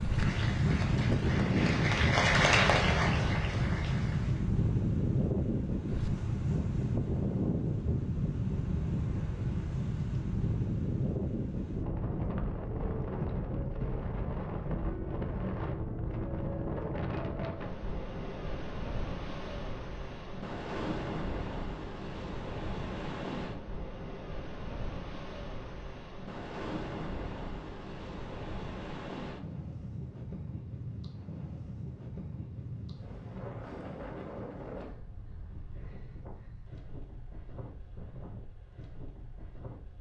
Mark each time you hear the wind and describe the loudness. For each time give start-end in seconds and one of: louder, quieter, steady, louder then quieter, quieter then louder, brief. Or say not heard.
0.0-39.9 quieter.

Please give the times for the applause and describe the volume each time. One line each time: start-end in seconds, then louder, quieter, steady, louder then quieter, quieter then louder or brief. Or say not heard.
0.0-4.5 louder then quieter.